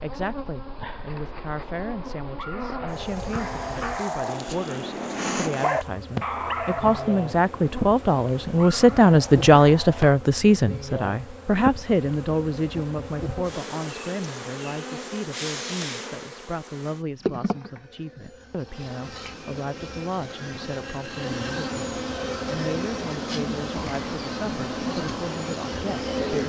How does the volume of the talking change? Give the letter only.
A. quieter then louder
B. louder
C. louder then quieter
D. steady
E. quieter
C.